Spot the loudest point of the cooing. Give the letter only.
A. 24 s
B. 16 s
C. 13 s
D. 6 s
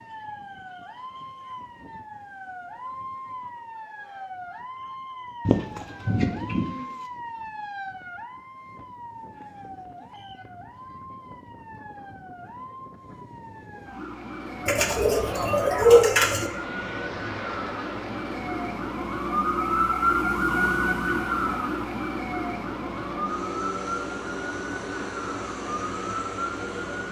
B.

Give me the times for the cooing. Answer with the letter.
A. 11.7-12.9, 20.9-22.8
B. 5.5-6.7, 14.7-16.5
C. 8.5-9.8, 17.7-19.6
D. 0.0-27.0
B.